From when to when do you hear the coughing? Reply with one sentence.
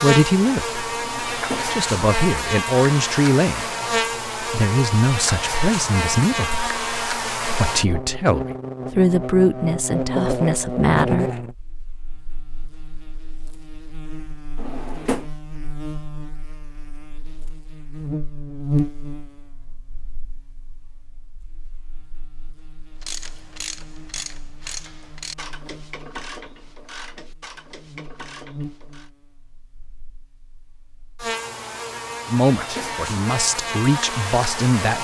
You can't hear the coughing here.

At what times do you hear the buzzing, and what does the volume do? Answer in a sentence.
You can hear the buzzing from 0.0 to 35.0 s, getting quieter then louder.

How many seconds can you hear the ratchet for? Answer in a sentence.
You can hear the ratchet for 6 seconds altogether.